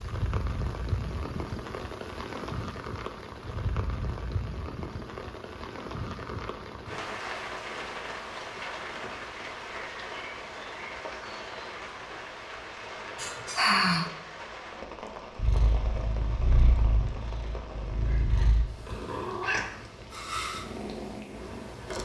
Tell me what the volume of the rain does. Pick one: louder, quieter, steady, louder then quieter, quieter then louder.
quieter.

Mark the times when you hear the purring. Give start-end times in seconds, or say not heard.
15.3-22.0.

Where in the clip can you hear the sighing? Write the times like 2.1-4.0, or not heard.
13.2-14.1.